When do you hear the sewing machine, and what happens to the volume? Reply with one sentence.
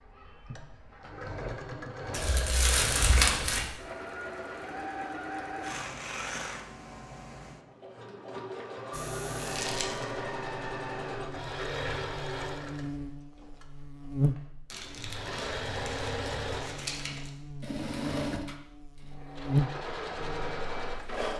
You can hear the sewing machine from 0.0 to 21.3 s, at a steady volume.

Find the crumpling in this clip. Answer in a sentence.
The crumpling can be heard from 2.1 to 3.7 s, from 9.4 to 10.1 s and from 14.7 to 17.3 s.